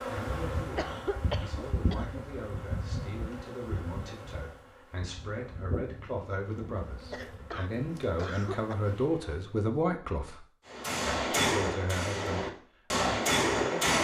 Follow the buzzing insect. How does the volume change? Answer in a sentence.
The loudness of the buzzing insect goes down.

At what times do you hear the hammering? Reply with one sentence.
The hammering can be heard from 10.7 to 13.9 s.